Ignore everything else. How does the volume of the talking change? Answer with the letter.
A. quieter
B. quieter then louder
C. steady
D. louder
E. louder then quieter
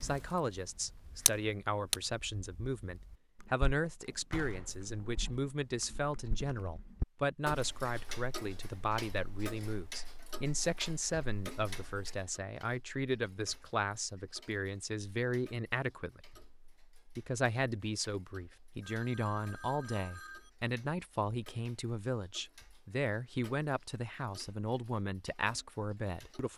C.